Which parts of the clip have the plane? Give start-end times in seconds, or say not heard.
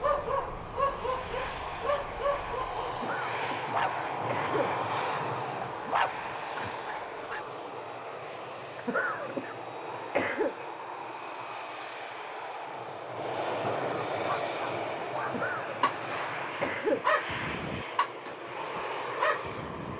0.0-19.9.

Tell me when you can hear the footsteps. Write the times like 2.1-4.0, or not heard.
not heard.